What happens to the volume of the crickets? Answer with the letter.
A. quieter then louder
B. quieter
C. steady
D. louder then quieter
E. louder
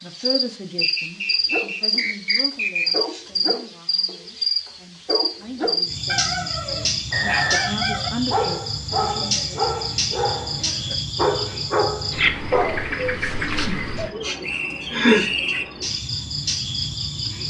C.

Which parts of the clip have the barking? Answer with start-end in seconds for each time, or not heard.
1.4-12.8.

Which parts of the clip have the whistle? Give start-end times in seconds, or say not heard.
0.8-2.9, 7.1-7.8, 14.4-15.7.